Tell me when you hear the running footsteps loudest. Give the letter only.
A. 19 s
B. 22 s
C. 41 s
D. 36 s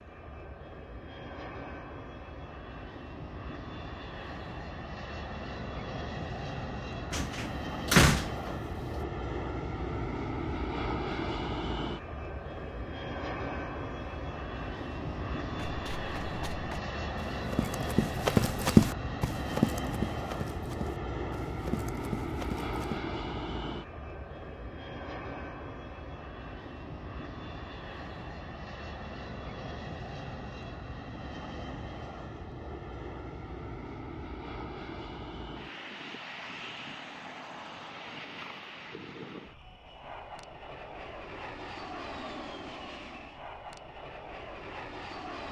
A.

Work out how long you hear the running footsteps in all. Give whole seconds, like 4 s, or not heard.
7 s.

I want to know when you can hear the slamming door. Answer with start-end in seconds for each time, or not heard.
7.1-8.6.